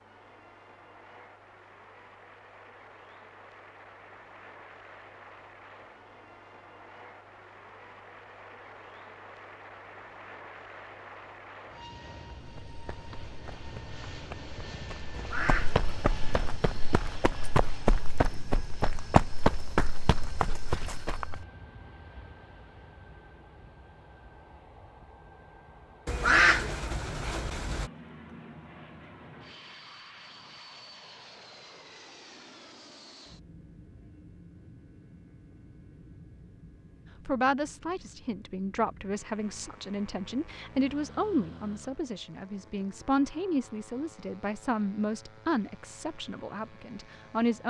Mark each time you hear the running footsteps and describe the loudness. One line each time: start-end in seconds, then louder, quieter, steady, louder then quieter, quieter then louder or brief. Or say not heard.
12.3-21.4 louder.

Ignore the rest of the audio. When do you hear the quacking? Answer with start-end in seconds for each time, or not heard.
15.1-16.6, 26.1-27.9.